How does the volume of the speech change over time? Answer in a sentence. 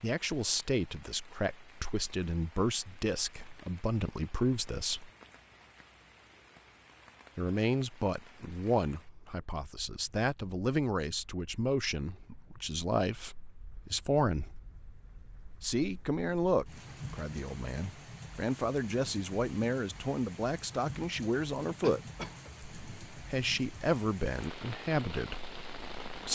The loudness of the speech stays about the same.